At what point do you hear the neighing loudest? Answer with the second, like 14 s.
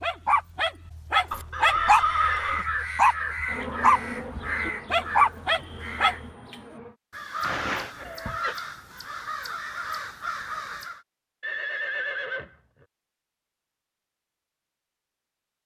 2 s.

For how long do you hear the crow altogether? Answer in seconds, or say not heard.
10 s.